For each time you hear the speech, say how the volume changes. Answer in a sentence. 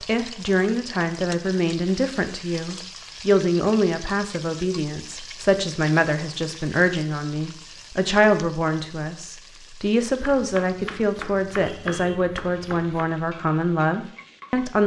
You can hear the speech from 0.0 to 14.8 s, at a steady volume.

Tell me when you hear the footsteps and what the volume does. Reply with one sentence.
The footsteps can't be heard in this clip.